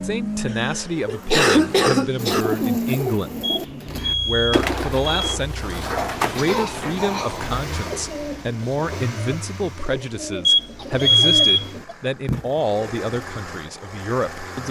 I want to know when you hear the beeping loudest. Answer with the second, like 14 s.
11 s.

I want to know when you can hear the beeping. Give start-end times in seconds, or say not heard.
3.4-5.2, 10.4-11.7.